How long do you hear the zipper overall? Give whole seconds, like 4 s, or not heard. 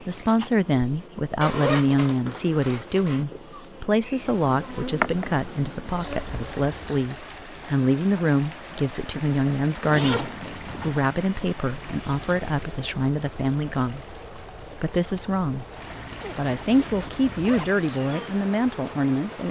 5 s.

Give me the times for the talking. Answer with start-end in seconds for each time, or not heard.
0.0-15.7, 16.4-19.4.